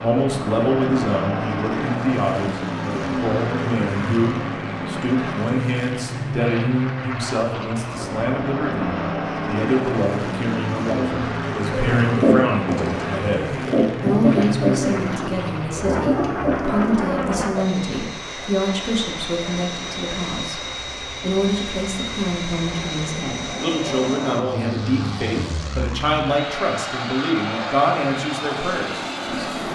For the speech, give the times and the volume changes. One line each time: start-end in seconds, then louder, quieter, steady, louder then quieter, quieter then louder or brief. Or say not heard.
0.0-29.5 steady.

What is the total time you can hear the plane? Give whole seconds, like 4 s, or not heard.
30 s.